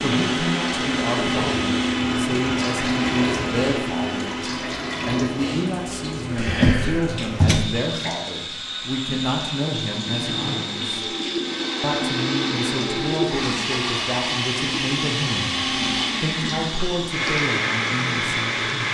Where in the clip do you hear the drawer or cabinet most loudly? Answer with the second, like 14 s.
7 s.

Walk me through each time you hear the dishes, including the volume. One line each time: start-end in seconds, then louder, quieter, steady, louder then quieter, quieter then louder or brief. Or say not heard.
not heard.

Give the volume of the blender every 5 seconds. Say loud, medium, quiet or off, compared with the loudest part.
loud, medium, loud, loud.